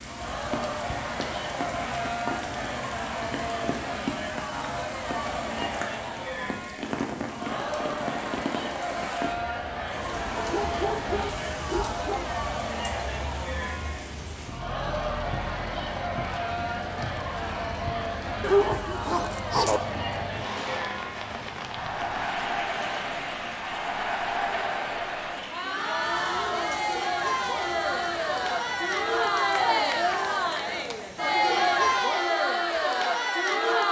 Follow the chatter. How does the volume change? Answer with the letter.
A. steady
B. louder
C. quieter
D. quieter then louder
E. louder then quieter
B.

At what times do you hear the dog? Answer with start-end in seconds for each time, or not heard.
10.3-12.3, 18.4-19.8.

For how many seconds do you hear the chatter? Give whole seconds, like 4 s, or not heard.
34 s.